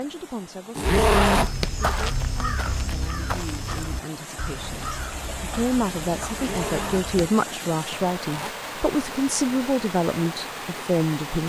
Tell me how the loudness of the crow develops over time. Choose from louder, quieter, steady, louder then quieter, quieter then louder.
quieter.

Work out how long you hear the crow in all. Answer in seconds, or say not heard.
6 s.